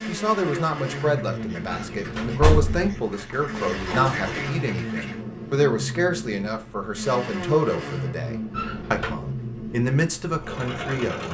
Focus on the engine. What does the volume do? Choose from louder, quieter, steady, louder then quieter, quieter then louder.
steady.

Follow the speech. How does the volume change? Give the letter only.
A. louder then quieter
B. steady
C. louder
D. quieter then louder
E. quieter
B.